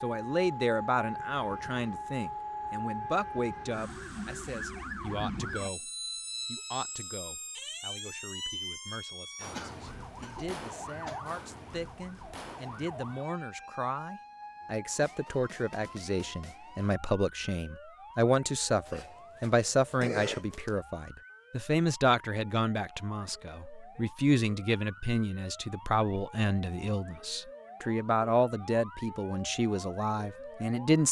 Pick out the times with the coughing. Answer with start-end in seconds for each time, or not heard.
9.5-11.2, 18.9-20.8.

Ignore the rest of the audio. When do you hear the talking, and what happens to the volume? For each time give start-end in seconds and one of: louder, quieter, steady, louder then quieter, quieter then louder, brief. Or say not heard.
0.0-31.0 quieter then louder.